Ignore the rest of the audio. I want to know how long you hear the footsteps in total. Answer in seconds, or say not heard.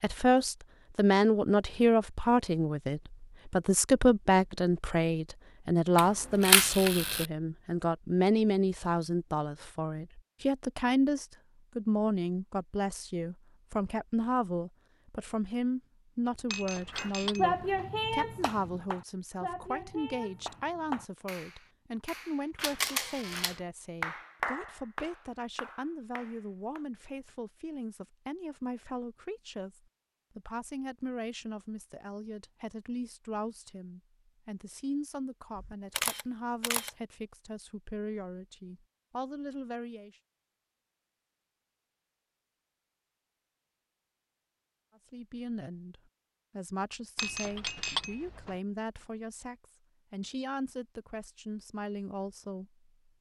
not heard.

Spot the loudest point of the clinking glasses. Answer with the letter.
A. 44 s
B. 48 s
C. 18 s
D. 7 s
B.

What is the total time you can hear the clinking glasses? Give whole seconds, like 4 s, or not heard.
3 s.